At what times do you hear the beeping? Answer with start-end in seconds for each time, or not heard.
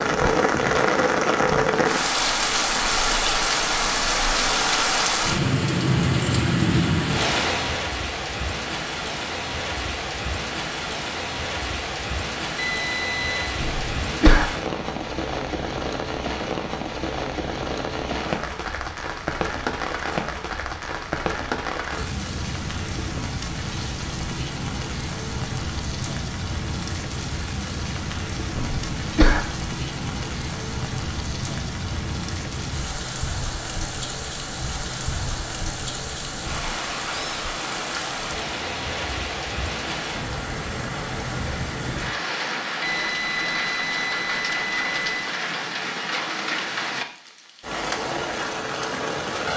12.6-13.4, 42.8-45.1.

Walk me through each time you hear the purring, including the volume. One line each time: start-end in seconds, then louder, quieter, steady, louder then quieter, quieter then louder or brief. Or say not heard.
not heard.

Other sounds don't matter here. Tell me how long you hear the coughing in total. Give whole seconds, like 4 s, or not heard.
2 s.